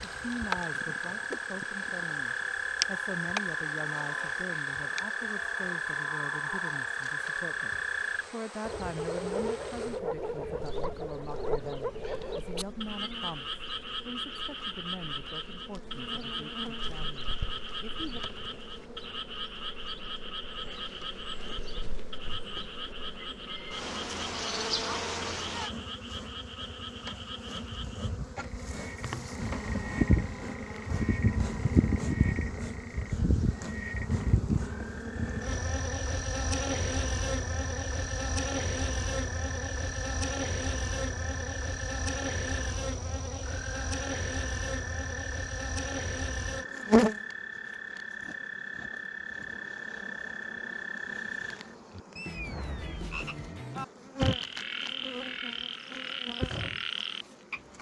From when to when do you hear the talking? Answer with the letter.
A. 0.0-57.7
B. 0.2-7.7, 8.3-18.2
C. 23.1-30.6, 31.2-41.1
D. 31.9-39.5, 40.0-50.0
B.